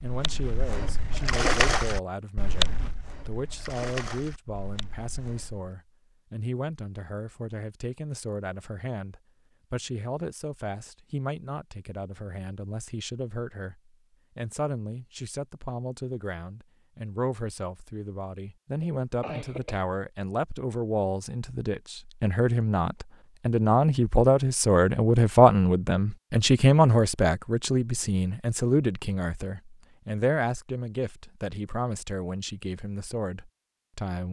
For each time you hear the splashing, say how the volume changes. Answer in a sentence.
You can hear the splashing from 0.0 to 5.7 s, getting louder then quieter.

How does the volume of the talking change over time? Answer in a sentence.
The loudness of the talking goes up, then down.